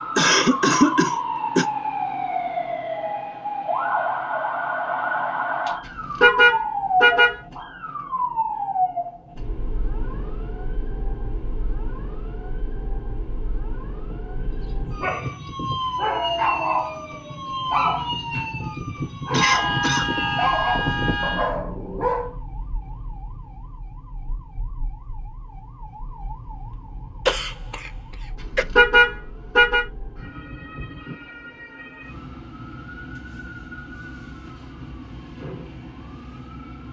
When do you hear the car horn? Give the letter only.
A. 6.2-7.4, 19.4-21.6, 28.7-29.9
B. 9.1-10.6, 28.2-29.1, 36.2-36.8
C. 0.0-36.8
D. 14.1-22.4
A.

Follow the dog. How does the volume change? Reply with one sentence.
The loudness of the dog goes up.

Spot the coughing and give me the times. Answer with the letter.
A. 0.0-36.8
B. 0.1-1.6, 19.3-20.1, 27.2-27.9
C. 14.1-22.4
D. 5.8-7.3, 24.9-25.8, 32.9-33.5
B.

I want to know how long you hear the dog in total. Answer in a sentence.
You can hear the dog for 8 seconds altogether.